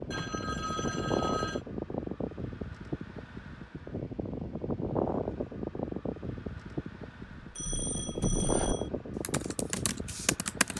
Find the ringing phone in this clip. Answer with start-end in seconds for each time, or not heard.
0.1-1.6, 7.5-8.9.